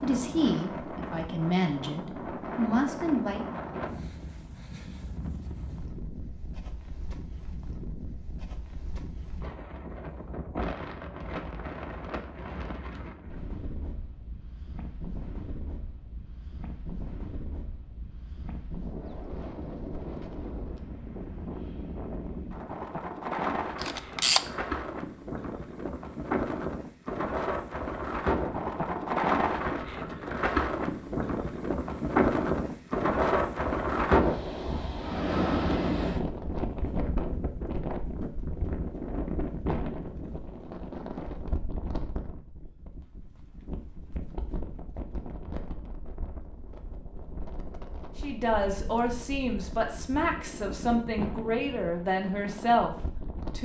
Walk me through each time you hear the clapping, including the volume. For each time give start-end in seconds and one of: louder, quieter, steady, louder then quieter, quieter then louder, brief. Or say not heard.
not heard.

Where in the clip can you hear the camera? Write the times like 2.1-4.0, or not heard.
23.8-24.4.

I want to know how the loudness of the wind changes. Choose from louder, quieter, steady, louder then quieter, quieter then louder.
louder then quieter.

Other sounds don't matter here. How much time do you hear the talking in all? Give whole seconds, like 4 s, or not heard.
9 s.